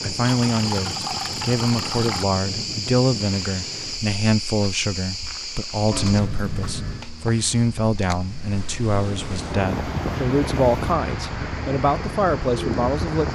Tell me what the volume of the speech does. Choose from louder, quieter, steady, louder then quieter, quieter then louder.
steady.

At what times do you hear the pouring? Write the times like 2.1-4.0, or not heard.
0.2-2.2, 5.9-7.1, 8.9-10.9.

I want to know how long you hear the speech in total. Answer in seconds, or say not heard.
13 s.